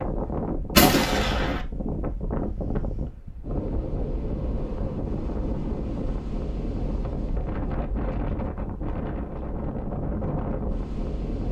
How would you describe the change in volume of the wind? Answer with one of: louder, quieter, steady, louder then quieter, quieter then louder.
steady.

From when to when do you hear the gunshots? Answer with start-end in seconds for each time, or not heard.
0.8-1.6.